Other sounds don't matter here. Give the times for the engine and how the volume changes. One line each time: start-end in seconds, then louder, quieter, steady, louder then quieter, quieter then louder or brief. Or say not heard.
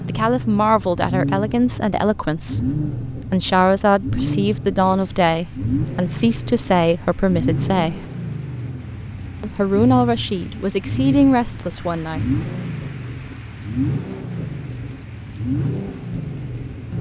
0.0-16.9 steady.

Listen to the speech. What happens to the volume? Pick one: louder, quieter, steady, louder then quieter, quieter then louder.
steady.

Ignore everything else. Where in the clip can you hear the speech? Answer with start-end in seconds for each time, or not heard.
0.1-8.1, 9.4-12.4.